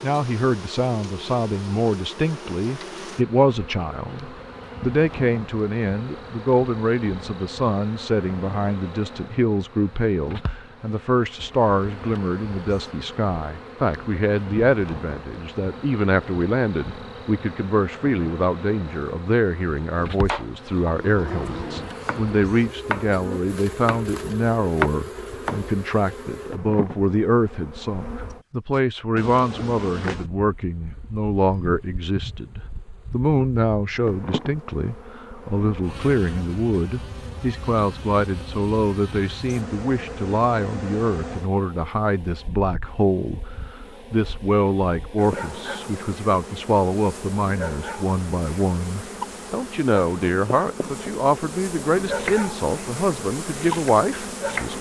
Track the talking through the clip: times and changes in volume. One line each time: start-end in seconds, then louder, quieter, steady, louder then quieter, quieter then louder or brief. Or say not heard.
0.0-43.4 steady
44.1-54.7 steady.